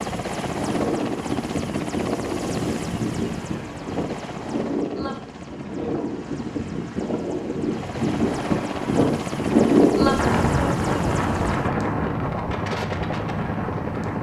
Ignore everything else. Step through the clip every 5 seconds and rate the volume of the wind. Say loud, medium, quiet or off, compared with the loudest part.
medium, loud, loud.